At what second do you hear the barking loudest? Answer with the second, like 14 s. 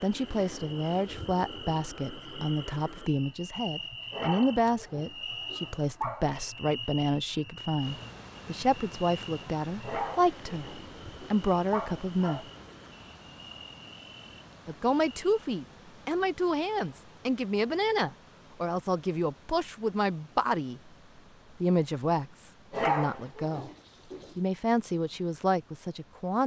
23 s.